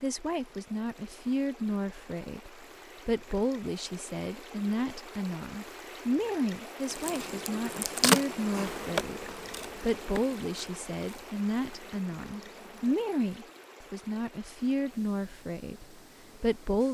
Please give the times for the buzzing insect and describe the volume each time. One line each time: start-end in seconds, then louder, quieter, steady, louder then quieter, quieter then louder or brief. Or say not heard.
6.8-13.2 quieter.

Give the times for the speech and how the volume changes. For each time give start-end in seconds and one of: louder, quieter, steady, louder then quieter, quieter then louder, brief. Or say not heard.
0.0-16.8 steady.